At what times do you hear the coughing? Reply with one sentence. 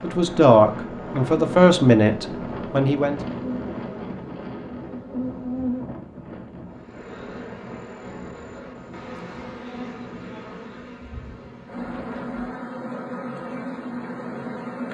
You can't hear the coughing here.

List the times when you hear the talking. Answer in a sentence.
You can hear the talking from 0.0 to 3.2 s.